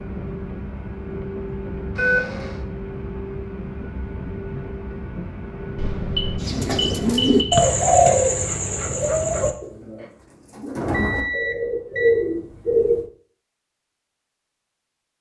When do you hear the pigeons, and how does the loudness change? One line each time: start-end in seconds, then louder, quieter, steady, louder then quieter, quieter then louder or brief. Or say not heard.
6.4-13.1 quieter then louder.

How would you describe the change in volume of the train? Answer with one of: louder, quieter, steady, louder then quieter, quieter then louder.
steady.